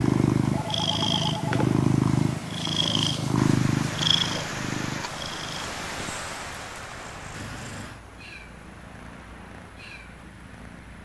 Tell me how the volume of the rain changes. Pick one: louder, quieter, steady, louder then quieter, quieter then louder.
quieter.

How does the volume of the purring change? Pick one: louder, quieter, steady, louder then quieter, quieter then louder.
quieter.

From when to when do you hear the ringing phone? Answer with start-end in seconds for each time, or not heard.
0.5-1.8.